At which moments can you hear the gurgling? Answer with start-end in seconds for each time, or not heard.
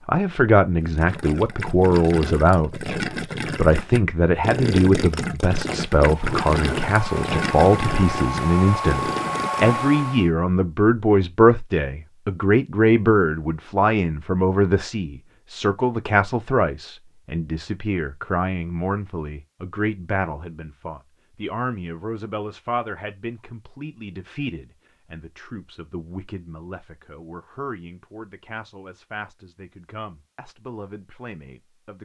0.8-9.8.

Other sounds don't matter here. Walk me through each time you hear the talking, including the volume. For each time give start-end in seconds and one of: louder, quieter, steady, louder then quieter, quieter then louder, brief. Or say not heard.
0.1-32.0 quieter.